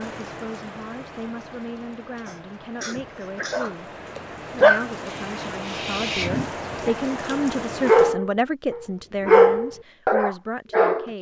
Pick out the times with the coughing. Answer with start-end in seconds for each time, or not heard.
2.2-3.7.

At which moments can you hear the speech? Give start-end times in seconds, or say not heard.
0.0-3.9, 4.5-11.1.